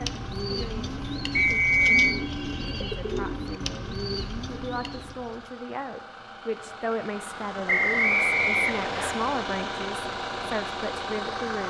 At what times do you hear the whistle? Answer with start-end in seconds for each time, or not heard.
1.4-2.1, 7.7-9.2.